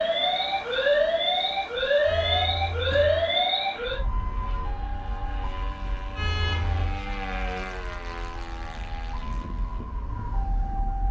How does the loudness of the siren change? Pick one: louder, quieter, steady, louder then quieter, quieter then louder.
quieter.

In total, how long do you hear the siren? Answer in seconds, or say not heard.
11 s.